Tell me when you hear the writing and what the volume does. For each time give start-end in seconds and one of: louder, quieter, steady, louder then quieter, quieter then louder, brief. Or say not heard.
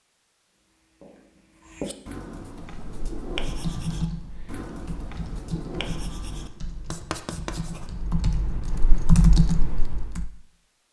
0.6-7.9 steady.